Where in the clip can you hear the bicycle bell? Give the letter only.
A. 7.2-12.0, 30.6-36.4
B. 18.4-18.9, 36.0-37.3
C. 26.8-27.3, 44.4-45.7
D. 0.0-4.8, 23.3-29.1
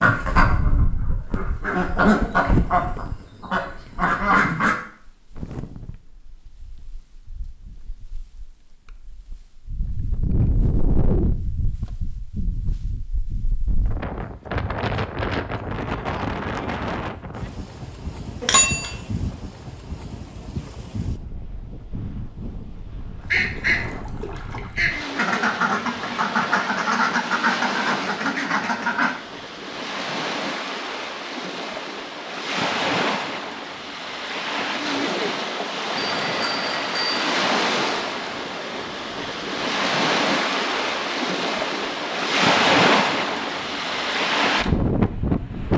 B.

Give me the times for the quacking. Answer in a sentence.
The quacking can be heard from 0.0 to 4.8 s and from 23.3 to 29.1 s.